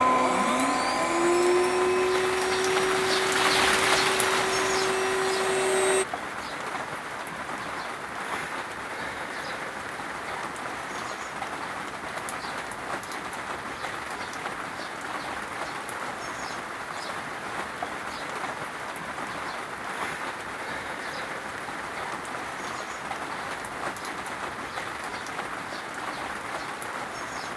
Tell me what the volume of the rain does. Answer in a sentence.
The loudness of the rain goes down.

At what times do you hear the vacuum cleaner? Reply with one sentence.
You can hear the vacuum cleaner from 0.0 to 6.0 s.